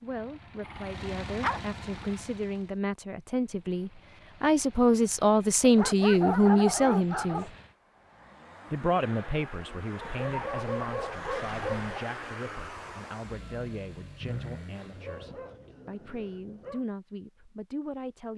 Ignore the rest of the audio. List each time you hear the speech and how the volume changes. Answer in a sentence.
You can hear the speech from 0.0 to 7.5 s, getting louder; and from 8.7 to 18.3 s, getting quieter then louder.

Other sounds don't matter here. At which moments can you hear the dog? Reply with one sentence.
You can hear the dog from 0.6 to 2.2 s, from 5.6 to 7.5 s, from 10.0 to 11.9 s and from 14.2 to 16.9 s.